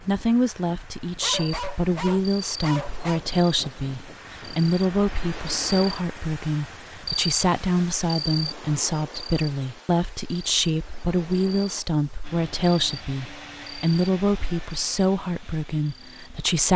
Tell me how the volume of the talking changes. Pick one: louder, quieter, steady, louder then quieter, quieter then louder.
steady.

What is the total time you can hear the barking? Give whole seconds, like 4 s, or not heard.
2 s.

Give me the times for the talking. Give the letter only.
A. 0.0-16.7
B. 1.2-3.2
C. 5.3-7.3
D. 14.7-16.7
A.